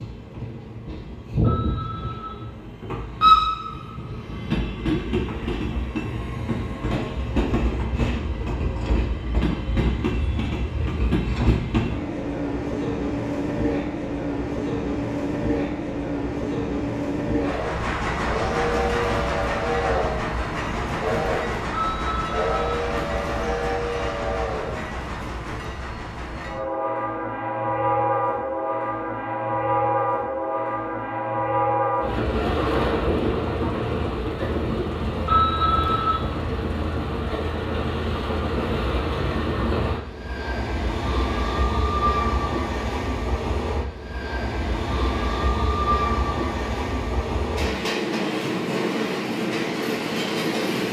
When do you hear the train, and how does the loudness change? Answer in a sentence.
The train can be heard from 0.0 to 50.8 s, at a steady volume.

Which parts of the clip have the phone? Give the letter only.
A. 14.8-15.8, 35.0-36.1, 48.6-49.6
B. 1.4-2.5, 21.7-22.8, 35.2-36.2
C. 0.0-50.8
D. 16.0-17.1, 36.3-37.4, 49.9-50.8
B.